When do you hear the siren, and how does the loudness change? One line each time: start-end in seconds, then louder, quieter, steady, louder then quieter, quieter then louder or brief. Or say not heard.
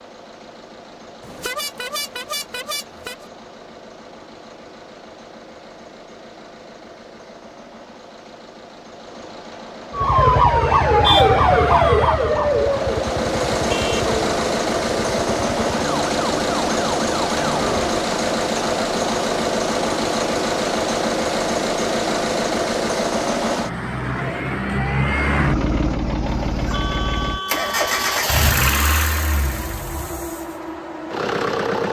9.9-18.1 quieter.